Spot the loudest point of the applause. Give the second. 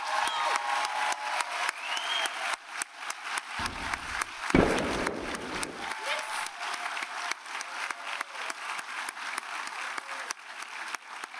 1 s.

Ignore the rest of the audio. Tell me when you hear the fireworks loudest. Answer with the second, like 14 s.
5 s.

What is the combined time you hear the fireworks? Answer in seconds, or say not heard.
2 s.